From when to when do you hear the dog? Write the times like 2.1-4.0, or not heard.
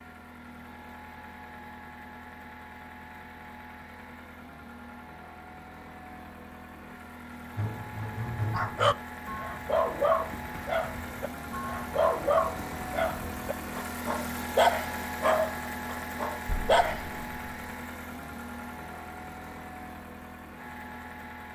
7.5-17.1.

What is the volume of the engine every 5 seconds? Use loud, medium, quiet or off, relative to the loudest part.
medium, medium, loud, loud, medium.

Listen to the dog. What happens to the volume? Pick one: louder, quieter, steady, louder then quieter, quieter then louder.
steady.